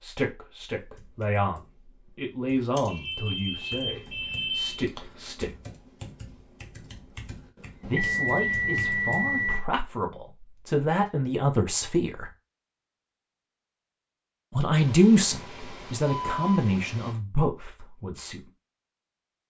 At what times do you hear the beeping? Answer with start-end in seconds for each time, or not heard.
2.9-4.8, 7.8-9.7, 14.7-17.1.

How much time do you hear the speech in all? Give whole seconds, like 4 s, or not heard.
14 s.